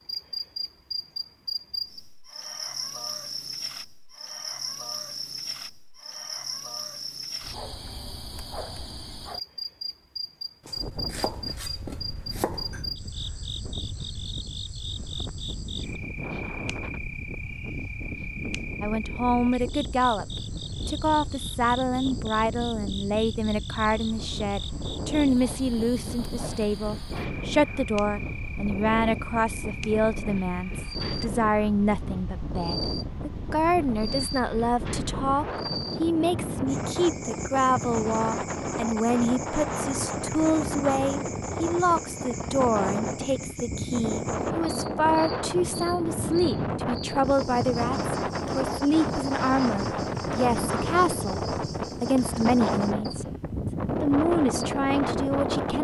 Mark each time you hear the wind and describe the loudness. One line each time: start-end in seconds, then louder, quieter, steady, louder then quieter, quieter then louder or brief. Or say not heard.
10.8-55.7 louder.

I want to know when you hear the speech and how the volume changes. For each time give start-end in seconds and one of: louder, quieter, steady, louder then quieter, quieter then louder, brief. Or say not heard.
18.8-53.2 steady
54.0-55.7 brief.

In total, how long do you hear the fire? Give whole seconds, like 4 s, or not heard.
not heard.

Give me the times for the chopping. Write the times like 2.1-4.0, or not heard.
10.7-12.8.